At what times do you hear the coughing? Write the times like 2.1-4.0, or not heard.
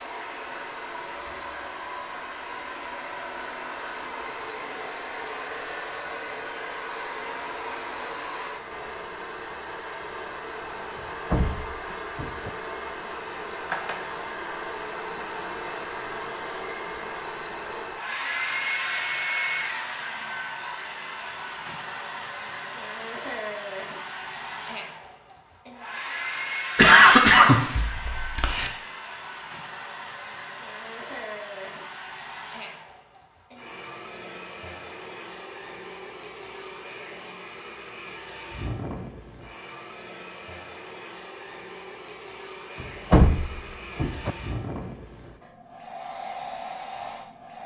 26.8-28.7.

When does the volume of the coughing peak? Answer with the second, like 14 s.
27 s.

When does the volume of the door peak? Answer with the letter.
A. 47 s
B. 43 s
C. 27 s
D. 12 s
B.